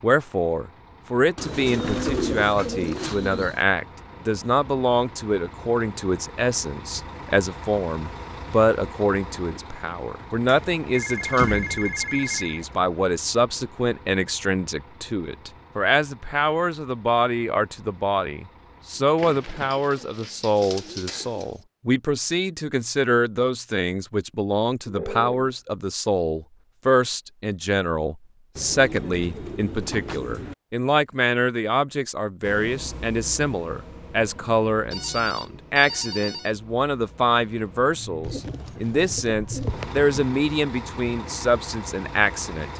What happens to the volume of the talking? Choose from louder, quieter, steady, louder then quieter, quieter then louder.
steady.